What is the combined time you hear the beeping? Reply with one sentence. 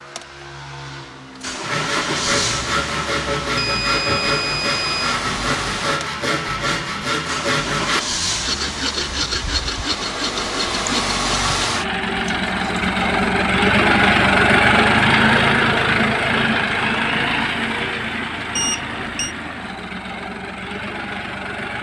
You can hear the beeping for 2 seconds altogether.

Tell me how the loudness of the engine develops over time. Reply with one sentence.
The volume of the engine goes up, then down.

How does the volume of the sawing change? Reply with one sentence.
The loudness of the sawing stays about the same.